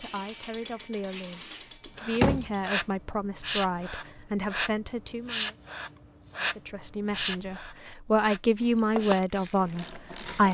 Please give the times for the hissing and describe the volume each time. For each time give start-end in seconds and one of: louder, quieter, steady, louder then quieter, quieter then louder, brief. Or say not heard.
0.0-10.4 louder then quieter.